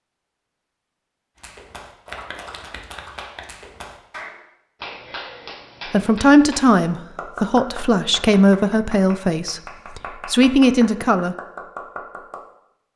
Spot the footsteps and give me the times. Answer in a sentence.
The footsteps can't be heard in this clip.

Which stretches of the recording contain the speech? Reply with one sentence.
The speech can be heard from 5.9 to 11.3 s.